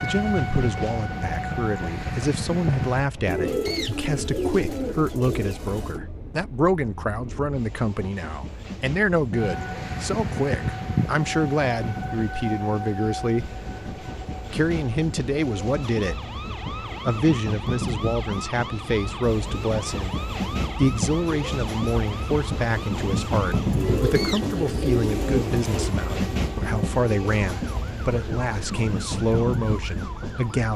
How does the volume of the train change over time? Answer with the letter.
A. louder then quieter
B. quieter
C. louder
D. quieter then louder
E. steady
C.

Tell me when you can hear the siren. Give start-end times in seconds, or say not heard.
0.0-3.1, 9.3-30.7.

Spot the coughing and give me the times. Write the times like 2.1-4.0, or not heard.
not heard.